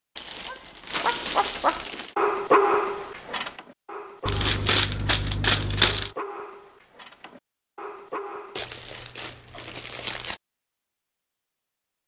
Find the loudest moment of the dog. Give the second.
3 s.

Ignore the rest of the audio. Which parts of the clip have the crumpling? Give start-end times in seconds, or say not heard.
0.1-2.1, 4.2-6.1, 8.6-10.4.